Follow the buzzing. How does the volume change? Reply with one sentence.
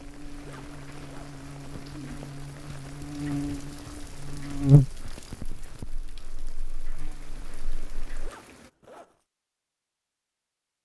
The volume of the buzzing goes up, then down.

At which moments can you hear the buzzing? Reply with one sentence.
The buzzing can be heard from 0.0 to 8.1 s.